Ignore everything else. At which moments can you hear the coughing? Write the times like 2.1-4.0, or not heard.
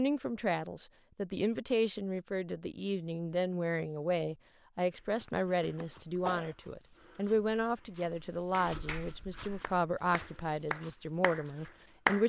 5.6-6.5.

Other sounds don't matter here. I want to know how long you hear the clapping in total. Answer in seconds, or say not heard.
4 s.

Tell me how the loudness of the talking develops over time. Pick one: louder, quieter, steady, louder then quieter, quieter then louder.
steady.